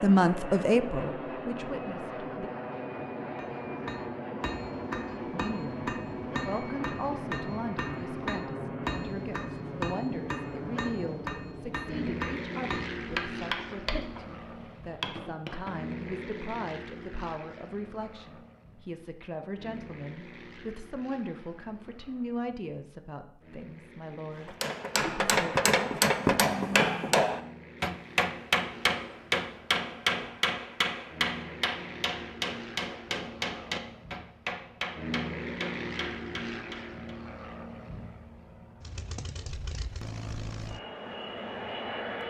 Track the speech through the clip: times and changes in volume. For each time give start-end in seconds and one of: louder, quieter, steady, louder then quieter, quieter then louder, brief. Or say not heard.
0.0-2.5 brief
5.3-26.0 steady.